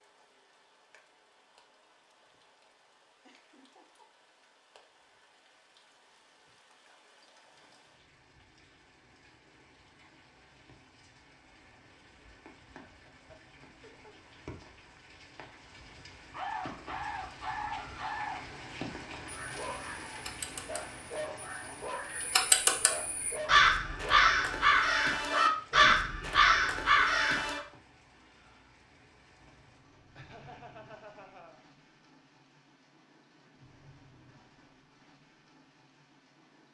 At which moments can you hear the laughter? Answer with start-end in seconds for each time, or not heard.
3.2-4.0, 12.8-14.5, 30.1-31.6.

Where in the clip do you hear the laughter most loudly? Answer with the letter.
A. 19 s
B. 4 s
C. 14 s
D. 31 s
D.